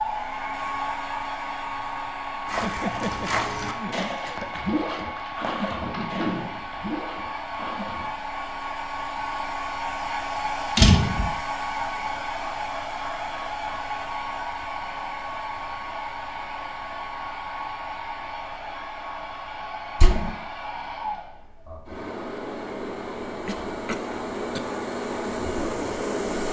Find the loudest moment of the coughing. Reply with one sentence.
The loudest moment of the coughing is at 3 seconds.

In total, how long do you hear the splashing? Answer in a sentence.
You can hear the splashing for 6 seconds altogether.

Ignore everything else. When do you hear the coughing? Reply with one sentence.
The coughing can be heard from 2.6 to 4.6 s and from 23.4 to 24.6 s.